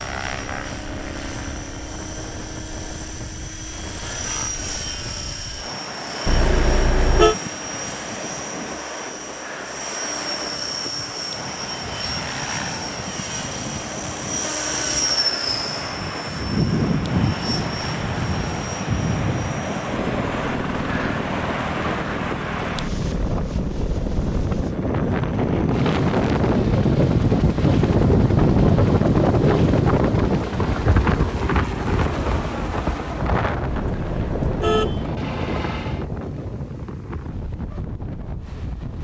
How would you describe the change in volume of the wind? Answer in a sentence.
The volume of the wind goes up, then down.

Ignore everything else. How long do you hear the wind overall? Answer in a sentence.
The wind can be heard for 39 seconds in total.